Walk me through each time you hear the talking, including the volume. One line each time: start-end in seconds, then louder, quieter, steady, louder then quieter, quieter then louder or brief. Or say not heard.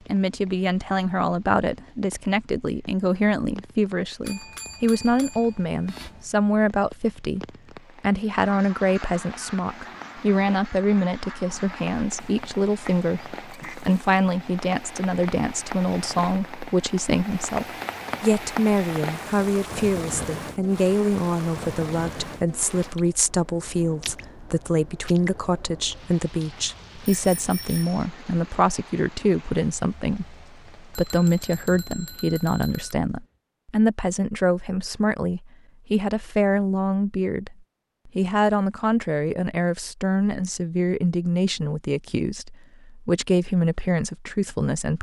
0.1-44.9 steady.